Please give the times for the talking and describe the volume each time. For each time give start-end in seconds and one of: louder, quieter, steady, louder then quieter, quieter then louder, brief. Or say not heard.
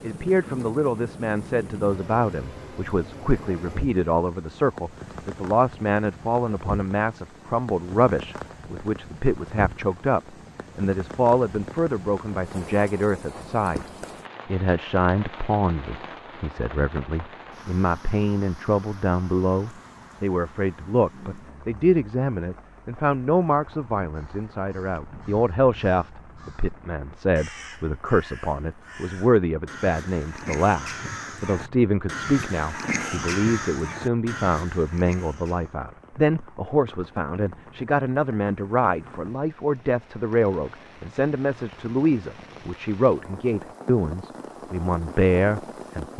0.0-13.8 steady
14.4-46.1 steady.